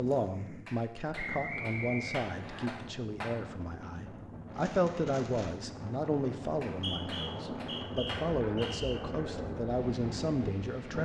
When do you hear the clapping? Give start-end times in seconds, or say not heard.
0.7-3.4, 6.6-8.8.